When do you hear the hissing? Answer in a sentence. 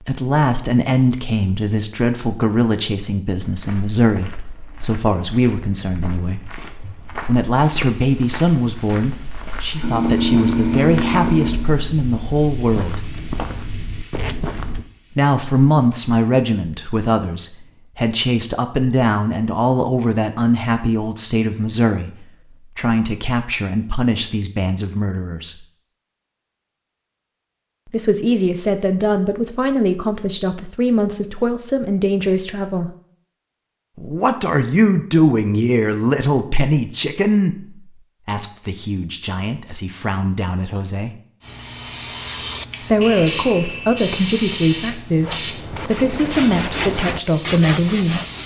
You can hear the hissing from 7.9 to 15.3 s and from 41.4 to 48.4 s.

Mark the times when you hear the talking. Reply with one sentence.
You can hear the talking from 0.0 to 6.5 s, from 7.2 to 13.0 s, from 15.2 to 25.6 s, from 27.9 to 32.9 s, from 34.0 to 41.1 s and from 42.8 to 48.2 s.